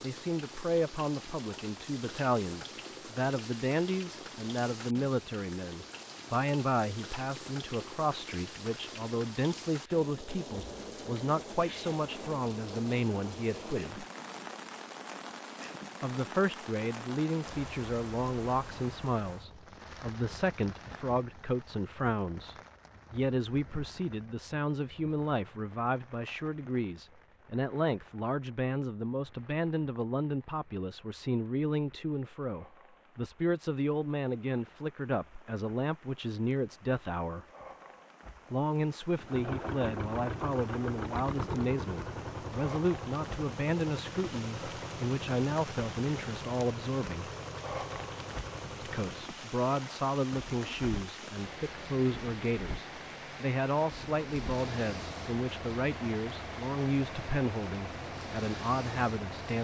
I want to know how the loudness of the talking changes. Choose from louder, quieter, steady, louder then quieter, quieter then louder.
steady.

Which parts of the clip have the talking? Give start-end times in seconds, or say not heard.
0.0-14.1, 16.0-37.5, 38.5-47.3, 48.8-59.5.